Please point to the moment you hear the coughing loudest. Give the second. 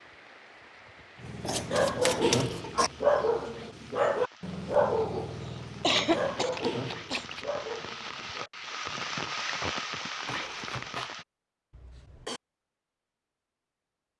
6 s.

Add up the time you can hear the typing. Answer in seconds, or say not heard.
not heard.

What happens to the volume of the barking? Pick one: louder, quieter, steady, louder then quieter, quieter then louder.
quieter.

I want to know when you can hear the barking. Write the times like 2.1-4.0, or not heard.
1.2-8.5.